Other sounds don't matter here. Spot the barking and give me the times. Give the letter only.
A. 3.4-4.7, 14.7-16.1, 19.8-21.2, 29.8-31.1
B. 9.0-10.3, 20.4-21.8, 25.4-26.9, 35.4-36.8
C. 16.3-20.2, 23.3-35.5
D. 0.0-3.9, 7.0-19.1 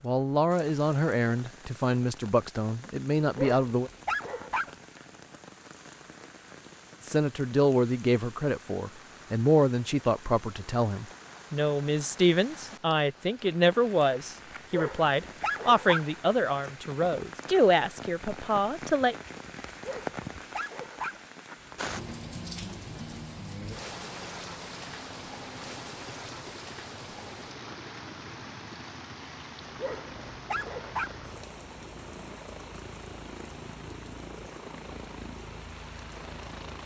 A.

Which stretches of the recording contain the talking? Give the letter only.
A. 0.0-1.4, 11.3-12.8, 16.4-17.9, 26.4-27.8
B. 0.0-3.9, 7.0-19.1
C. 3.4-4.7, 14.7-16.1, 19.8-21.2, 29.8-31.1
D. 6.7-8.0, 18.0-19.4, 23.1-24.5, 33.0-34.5
B.